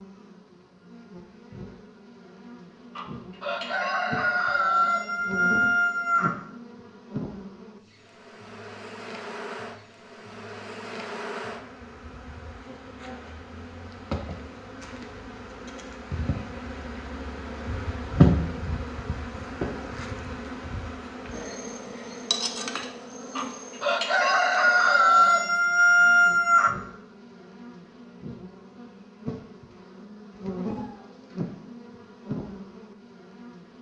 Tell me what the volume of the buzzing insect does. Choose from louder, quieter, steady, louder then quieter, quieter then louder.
louder then quieter.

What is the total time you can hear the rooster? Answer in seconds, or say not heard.
7 s.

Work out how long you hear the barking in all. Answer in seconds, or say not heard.
not heard.